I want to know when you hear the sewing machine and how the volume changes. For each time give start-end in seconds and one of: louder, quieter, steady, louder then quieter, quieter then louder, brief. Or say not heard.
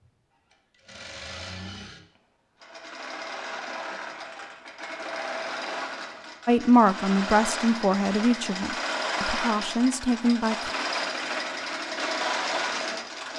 0.0-13.3 louder.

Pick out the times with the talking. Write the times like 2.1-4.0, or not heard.
6.5-10.7.